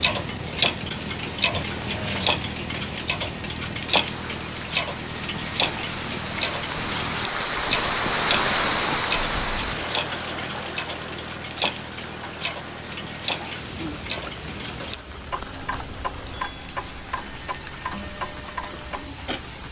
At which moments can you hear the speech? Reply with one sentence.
You can't hear the speech here.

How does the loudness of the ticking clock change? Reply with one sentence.
The loudness of the ticking clock goes down.